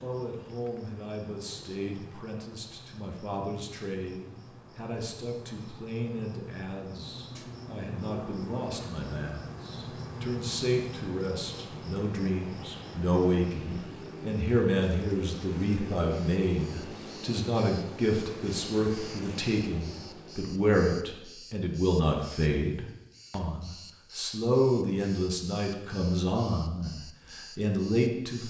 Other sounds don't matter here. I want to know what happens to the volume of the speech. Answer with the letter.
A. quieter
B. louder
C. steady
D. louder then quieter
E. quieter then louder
B.